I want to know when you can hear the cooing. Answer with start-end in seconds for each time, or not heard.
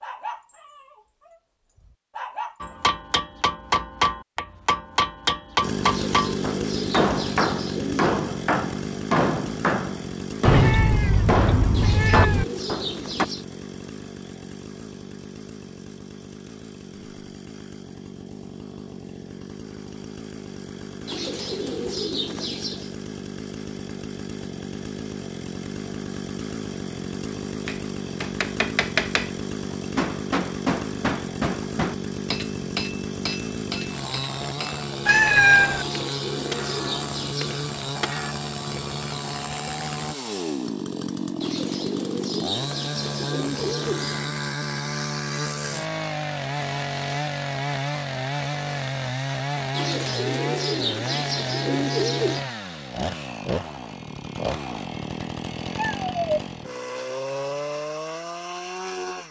5.8-8.1, 11.7-13.4, 21.1-22.9, 35.8-37.6, 41.4-44.3, 49.7-52.4.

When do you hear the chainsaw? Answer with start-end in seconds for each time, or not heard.
5.6-59.2.